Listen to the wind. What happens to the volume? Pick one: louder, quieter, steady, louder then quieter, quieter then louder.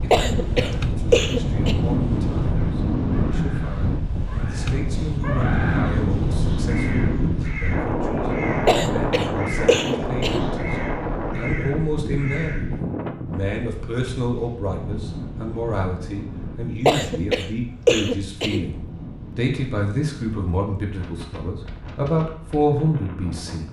quieter.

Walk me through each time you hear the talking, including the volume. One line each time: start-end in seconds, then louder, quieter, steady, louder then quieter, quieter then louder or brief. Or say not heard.
0.0-23.6 louder.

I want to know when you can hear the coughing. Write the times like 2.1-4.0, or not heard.
0.1-1.8, 8.7-10.5, 16.9-18.6.